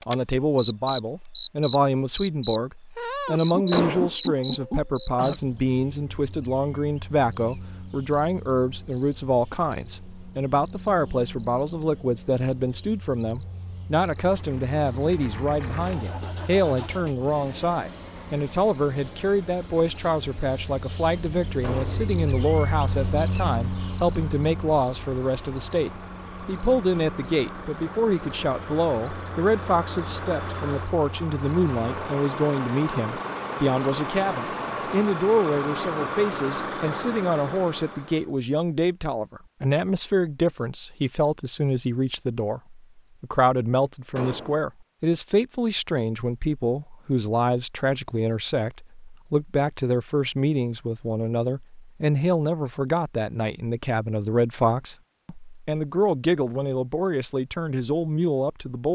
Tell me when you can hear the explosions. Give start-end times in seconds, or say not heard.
3.7-4.2, 21.6-22.1, 44.1-44.6.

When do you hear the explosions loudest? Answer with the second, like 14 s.
4 s.